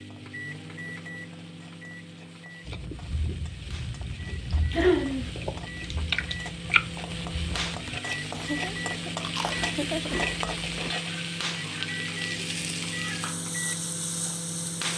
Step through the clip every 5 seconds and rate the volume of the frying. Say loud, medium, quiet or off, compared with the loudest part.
quiet, loud, loud.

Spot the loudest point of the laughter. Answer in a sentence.
The volume of the laughter peaks at 5 seconds.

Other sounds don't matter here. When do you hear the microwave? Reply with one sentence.
You can hear the microwave from 0.0 to 14.9 s.